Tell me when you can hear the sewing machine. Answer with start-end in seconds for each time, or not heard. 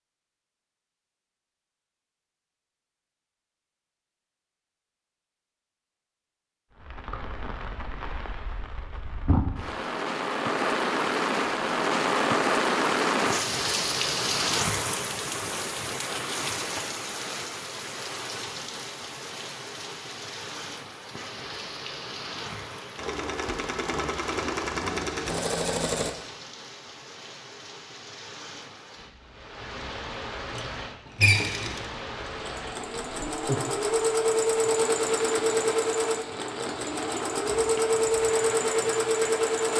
22.9-26.1, 30.4-39.7.